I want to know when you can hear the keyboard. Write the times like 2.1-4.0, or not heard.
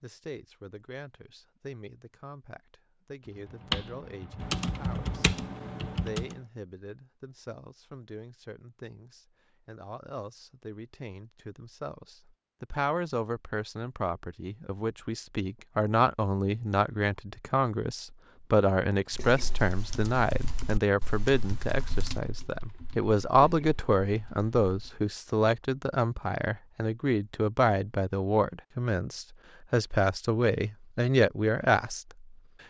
3.2-6.4, 19.1-25.0.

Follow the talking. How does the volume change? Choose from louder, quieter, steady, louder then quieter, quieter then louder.
louder.